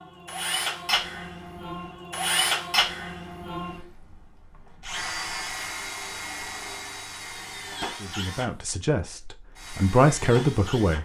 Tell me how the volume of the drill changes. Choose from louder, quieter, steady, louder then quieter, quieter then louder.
quieter.